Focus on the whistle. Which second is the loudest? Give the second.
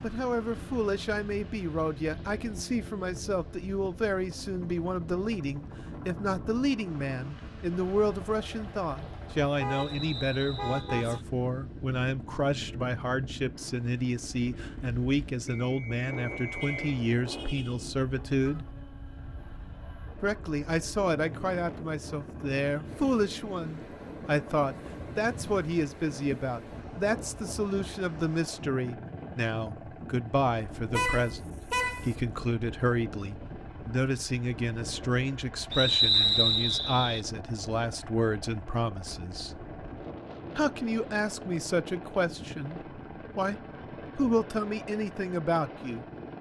36 s.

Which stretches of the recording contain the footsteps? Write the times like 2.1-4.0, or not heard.
not heard.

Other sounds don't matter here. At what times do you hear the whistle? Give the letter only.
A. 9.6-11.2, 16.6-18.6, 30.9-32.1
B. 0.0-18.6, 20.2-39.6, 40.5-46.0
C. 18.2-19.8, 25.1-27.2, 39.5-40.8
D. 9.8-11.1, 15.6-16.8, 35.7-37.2
D.